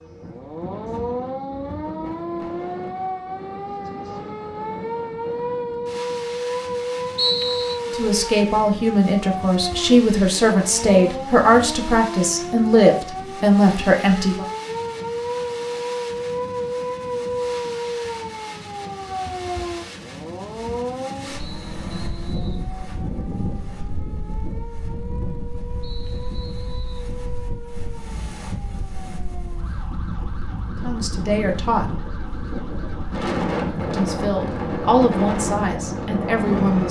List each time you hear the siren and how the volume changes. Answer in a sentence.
You can hear the siren from 0.0 to 36.8 s, getting quieter.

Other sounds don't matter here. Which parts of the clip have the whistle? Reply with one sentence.
The whistle can be heard from 7.2 to 7.8 s, from 21.4 to 22.6 s and from 25.8 to 27.1 s.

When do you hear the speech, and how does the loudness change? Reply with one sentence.
You can hear the speech from 7.9 to 14.4 s, at a steady volume; briefly from 30.8 to 32.0 s; and briefly from 33.9 to 36.8 s.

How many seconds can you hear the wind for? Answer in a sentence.
You can hear the wind for 37 seconds altogether.